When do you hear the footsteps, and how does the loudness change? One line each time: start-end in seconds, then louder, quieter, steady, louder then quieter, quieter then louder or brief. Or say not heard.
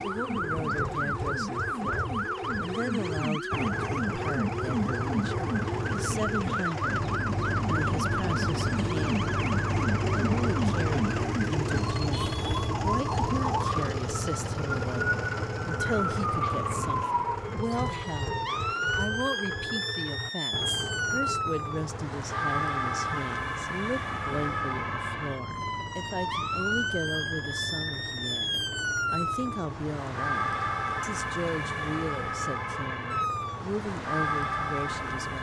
not heard.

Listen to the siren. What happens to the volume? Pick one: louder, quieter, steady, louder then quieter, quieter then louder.
steady.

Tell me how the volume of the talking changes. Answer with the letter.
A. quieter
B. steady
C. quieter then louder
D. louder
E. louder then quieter
B.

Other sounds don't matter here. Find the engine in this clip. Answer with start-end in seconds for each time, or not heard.
0.0-35.3.